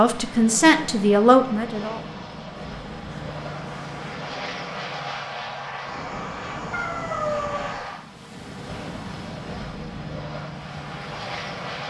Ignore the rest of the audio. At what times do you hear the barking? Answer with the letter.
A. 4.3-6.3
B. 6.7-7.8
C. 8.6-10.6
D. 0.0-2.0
B.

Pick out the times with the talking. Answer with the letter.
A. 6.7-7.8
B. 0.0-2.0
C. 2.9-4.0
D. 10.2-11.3
B.